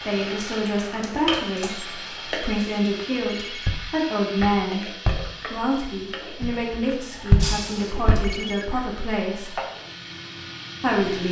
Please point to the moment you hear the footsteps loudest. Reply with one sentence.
The loudest moment of the footsteps is at 7 seconds.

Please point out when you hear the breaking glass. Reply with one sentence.
The breaking glass can be heard from 1.0 to 1.9 s and from 7.4 to 7.9 s.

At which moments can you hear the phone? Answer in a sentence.
You can hear the phone from 3.2 to 3.7 s and from 8.2 to 8.7 s.